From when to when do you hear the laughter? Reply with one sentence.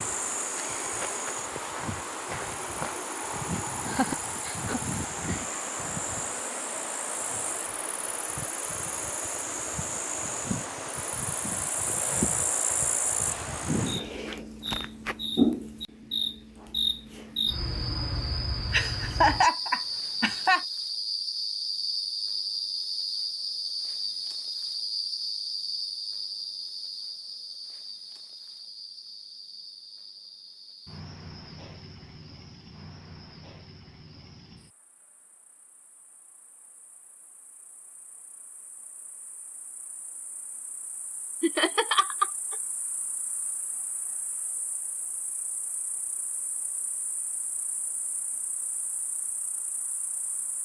You can hear the laughter from 3.9 to 5.5 s, from 18.7 to 20.6 s and from 41.4 to 42.5 s.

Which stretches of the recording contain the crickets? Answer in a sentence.
The crickets can be heard from 0.0 to 50.6 s.